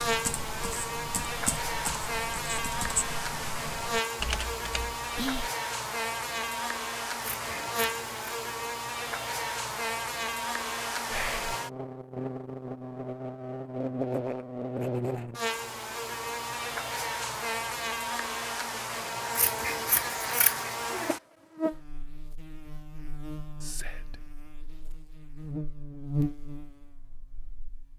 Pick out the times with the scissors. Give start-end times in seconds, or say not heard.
7.2-8.1, 19.4-20.7.